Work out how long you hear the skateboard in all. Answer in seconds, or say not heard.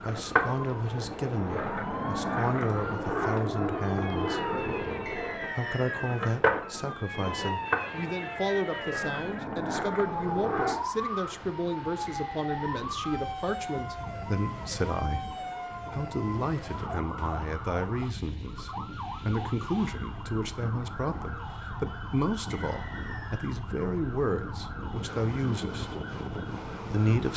11 s.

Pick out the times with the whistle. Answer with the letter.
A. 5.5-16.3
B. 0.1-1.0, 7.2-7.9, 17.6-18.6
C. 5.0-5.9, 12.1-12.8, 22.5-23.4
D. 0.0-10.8
C.